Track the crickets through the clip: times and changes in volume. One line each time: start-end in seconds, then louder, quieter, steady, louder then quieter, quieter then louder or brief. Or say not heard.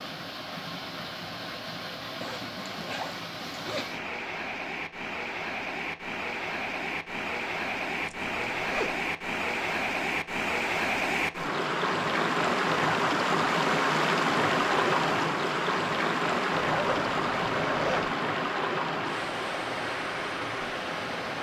not heard.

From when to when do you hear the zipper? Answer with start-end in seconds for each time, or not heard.
2.2-4.0, 8.1-9.1, 16.7-18.1.